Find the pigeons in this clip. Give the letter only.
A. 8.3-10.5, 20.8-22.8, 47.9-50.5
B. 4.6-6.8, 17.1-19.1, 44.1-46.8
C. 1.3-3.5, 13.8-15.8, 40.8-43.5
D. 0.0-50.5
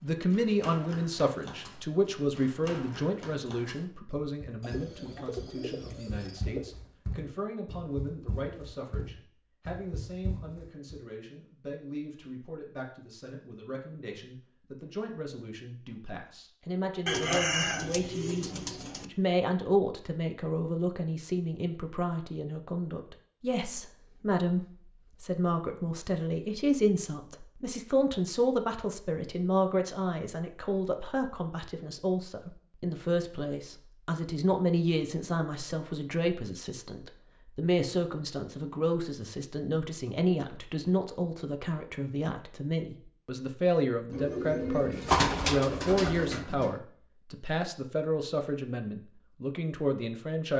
B.